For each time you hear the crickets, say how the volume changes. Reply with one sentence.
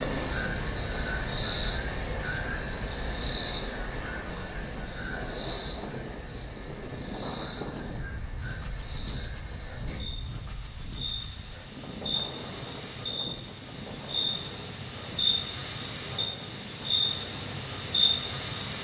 You can hear the crickets from 0.0 to 18.7 s, getting quieter then louder.